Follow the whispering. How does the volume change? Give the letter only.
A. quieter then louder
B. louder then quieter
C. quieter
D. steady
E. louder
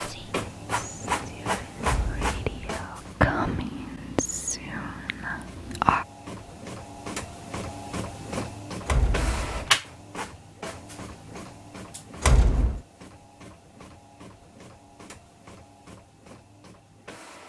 B.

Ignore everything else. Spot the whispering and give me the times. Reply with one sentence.
You can hear the whispering from 0.0 to 6.0 s.